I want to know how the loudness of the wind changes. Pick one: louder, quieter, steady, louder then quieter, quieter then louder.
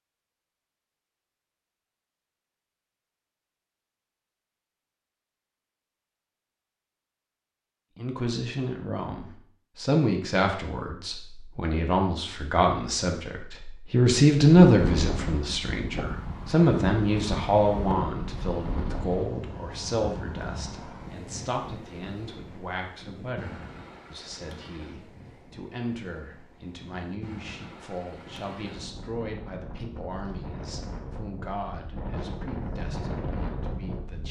quieter then louder.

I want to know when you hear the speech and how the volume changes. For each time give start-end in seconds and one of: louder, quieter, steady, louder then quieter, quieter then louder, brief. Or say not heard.
8.0-34.2 louder then quieter.